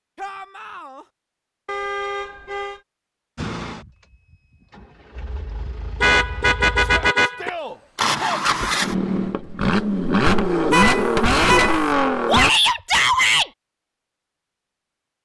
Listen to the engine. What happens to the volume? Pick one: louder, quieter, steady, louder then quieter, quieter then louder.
louder.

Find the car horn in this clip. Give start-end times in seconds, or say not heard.
1.6-2.8, 6.0-7.5, 10.7-11.9.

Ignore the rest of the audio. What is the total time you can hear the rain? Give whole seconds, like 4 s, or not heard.
not heard.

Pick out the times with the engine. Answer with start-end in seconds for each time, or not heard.
3.4-12.5.